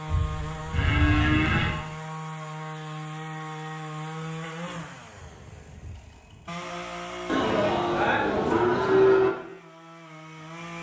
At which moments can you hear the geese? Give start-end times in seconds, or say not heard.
not heard.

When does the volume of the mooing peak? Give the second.
9 s.